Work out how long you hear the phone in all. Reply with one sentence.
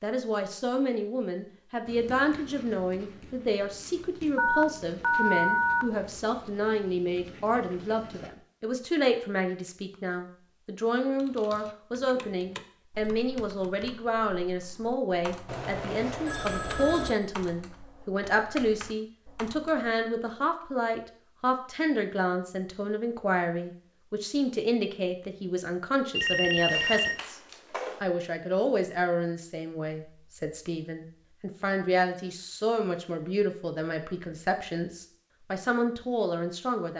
The phone can be heard for 5 seconds in total.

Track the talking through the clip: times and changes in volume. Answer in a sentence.
You can hear the talking from 0.0 to 27.4 s, at a steady volume; and from 28.0 to 36.9 s, getting quieter then louder.